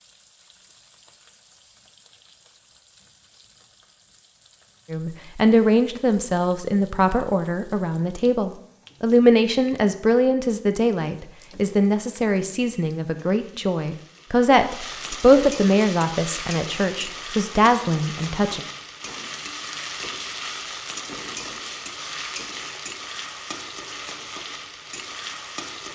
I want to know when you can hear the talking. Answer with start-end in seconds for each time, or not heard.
4.9-18.6.